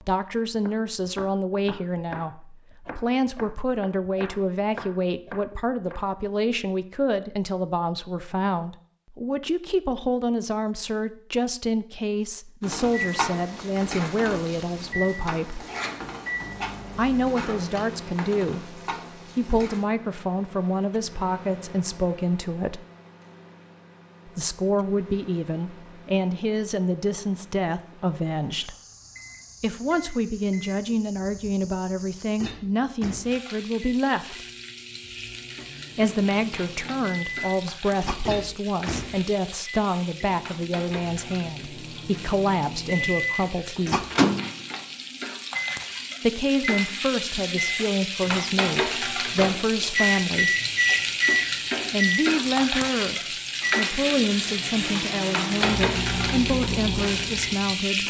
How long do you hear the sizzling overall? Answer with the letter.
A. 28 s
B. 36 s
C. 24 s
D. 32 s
D.